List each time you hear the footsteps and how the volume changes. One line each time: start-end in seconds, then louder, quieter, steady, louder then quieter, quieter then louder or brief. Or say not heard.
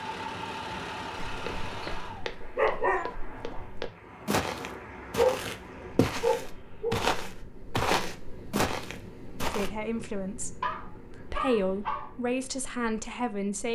1.2-9.7 louder.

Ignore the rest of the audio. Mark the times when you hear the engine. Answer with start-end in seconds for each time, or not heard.
0.0-2.2.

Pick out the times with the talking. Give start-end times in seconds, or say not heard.
9.5-13.7.